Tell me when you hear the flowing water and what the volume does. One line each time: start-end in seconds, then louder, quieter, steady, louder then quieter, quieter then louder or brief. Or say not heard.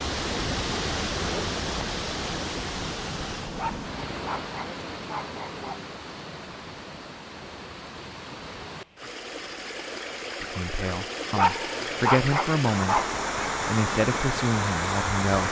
0.0-15.4 quieter then louder.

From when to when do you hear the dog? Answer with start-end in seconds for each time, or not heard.
3.5-5.8, 11.3-13.2.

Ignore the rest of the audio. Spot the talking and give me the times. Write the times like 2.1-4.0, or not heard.
10.4-15.4.